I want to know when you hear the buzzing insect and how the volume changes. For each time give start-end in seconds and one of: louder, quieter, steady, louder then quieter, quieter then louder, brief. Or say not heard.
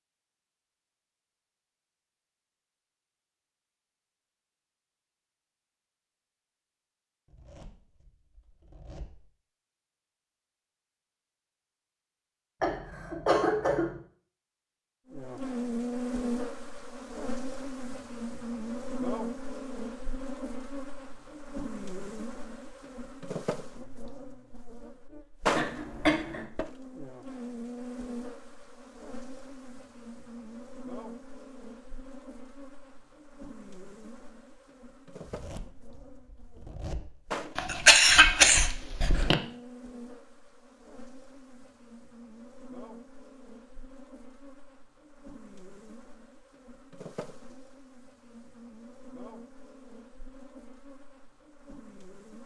15.1-52.4 quieter.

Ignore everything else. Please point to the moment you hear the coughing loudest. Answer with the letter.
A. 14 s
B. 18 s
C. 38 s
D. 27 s
C.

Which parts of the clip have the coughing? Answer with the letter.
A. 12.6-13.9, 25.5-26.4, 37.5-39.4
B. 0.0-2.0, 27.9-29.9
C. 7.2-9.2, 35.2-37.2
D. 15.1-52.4
A.